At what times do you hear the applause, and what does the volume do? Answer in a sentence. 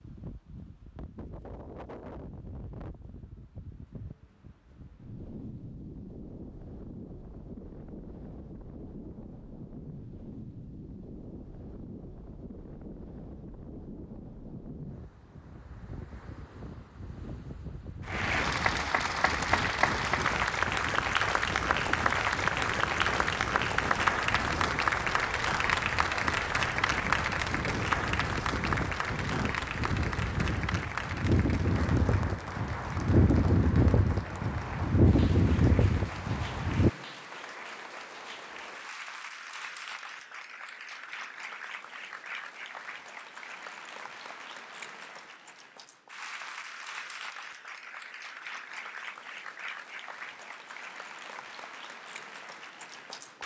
The applause can be heard from 18.0 to 53.4 s, getting quieter.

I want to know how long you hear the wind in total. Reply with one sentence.
The wind can be heard for 37 seconds in total.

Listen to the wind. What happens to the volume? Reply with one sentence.
The volume of the wind goes up.